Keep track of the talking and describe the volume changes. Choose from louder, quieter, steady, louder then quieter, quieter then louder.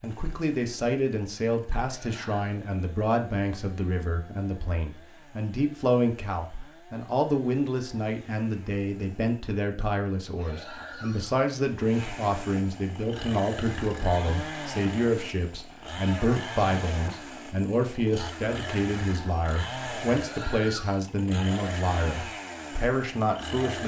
steady.